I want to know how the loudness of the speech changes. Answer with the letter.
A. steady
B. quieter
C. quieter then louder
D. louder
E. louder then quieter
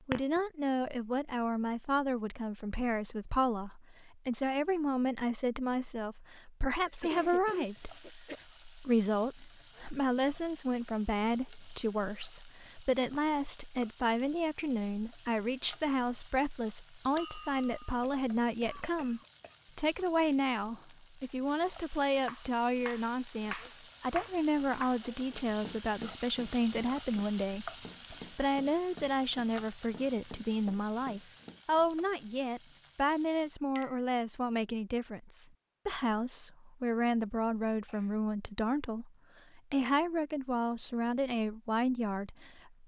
A.